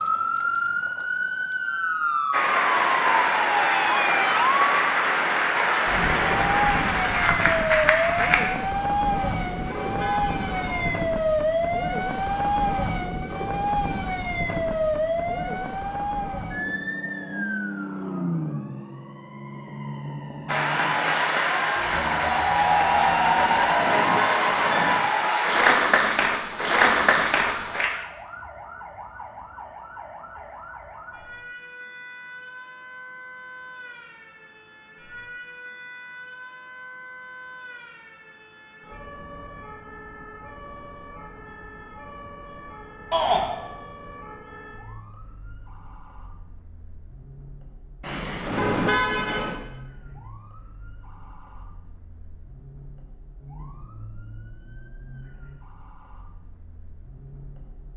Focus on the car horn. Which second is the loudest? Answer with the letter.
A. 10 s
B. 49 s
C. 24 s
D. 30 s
B.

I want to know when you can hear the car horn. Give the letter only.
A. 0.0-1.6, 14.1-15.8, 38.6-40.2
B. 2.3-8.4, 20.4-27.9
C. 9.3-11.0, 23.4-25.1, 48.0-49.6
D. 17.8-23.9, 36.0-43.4
C.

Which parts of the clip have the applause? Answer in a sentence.
The applause can be heard from 2.3 to 8.4 s and from 20.4 to 27.9 s.